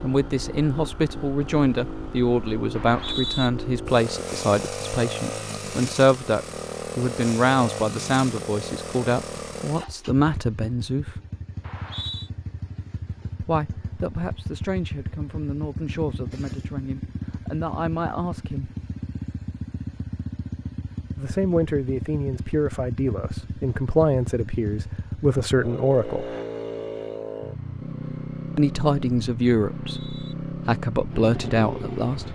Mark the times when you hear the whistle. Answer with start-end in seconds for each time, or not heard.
2.7-3.5, 11.6-12.3, 29.6-30.4.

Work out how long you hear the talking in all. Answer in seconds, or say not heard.
25 s.